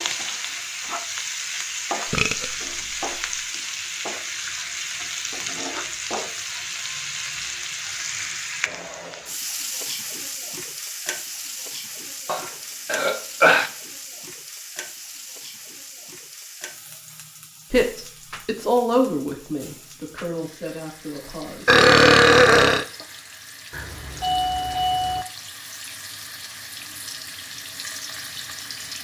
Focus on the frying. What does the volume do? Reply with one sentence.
The volume of the frying goes down, then up.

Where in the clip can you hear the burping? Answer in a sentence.
The burping can be heard from 2.1 to 2.5 s, from 12.2 to 13.7 s and from 21.6 to 22.9 s.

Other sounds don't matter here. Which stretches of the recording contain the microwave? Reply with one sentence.
The microwave can't be heard in this clip.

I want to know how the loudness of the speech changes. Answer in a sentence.
The volume of the speech goes down.